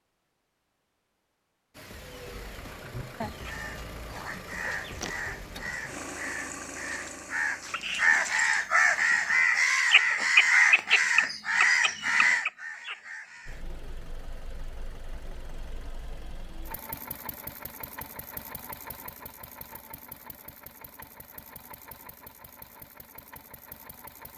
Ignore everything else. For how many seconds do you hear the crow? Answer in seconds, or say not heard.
11 s.